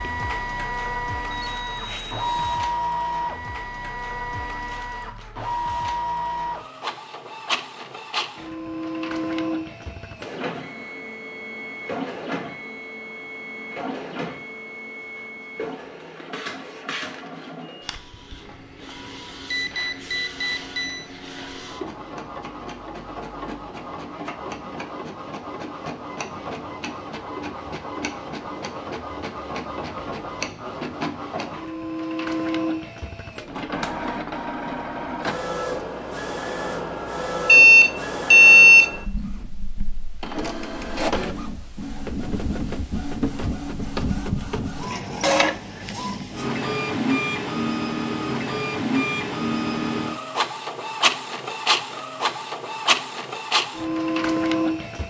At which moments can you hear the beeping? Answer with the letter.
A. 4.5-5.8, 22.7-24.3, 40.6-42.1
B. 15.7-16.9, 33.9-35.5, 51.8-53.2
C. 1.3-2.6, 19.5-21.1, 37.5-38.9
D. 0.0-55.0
C.